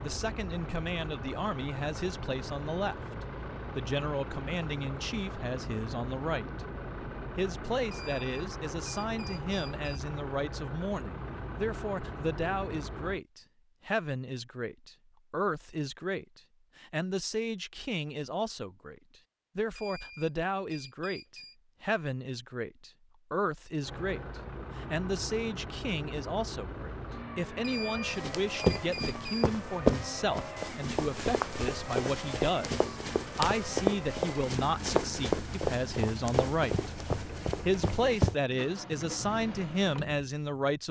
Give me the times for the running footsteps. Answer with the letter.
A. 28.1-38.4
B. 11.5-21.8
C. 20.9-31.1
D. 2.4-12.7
A.